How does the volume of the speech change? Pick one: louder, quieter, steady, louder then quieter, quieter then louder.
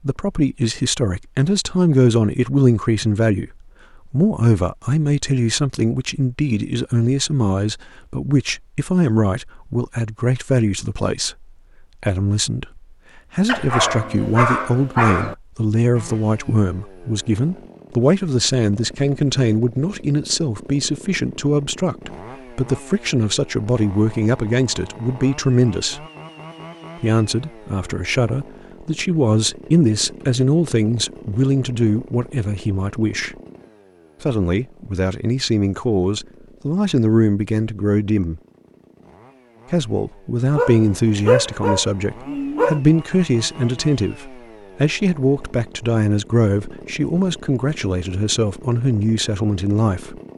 steady.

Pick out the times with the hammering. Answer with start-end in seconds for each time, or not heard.
not heard.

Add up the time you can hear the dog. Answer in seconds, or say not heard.
4 s.